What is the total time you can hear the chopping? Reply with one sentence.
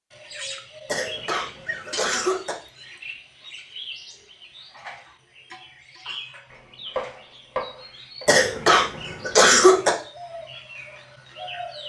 You can hear the chopping for 2 seconds altogether.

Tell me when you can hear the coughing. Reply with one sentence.
The coughing can be heard from 0.8 to 2.5 s and from 8.2 to 9.9 s.